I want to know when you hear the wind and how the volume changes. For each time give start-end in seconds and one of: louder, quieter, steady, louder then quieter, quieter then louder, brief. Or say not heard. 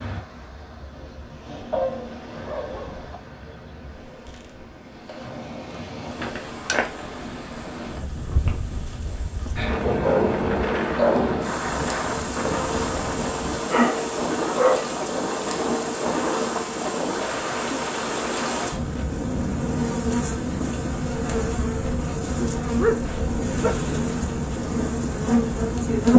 0.0-26.1 louder.